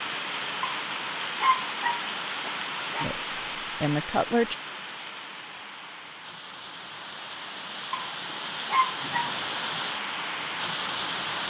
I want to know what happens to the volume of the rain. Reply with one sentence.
The loudness of the rain goes down, then up.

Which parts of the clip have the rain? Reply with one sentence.
The rain can be heard from 0.0 to 11.4 s.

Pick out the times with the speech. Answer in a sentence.
The speech can be heard from 3.0 to 4.5 s.